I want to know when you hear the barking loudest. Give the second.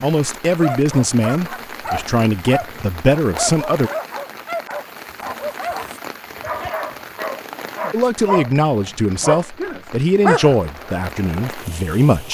10 s.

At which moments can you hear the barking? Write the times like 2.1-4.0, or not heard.
0.6-11.6.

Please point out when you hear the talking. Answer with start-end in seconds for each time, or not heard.
0.0-3.9, 7.9-12.2.